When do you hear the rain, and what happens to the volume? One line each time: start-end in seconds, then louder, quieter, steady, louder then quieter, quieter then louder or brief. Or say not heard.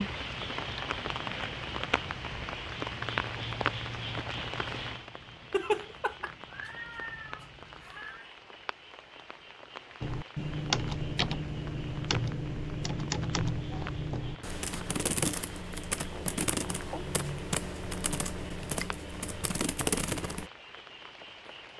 0.0-21.7 quieter.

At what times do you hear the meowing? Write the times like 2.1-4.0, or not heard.
5.5-8.2.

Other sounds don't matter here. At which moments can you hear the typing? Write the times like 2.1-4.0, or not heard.
10.0-20.5.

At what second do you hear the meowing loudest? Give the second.
6 s.